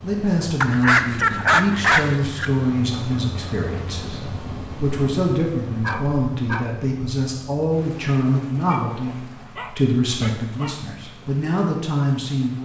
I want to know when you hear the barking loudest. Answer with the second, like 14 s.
1 s.